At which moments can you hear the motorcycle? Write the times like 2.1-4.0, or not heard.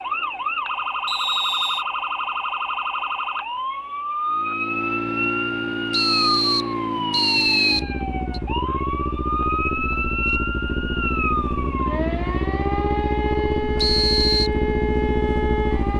4.2-15.9.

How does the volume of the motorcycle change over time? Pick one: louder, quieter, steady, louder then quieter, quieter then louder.
steady.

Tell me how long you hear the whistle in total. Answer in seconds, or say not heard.
4 s.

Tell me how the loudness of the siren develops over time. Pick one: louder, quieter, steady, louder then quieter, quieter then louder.
steady.